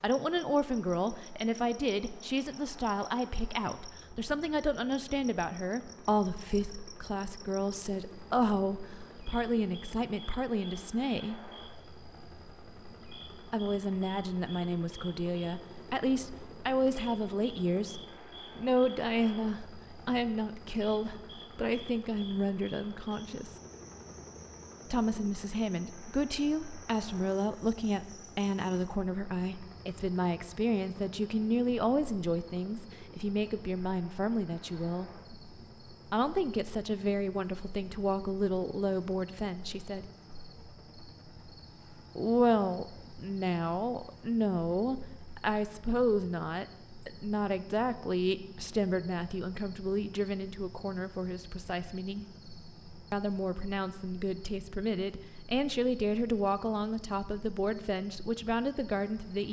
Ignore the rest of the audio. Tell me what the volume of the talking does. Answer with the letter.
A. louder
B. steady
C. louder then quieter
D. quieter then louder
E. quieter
B.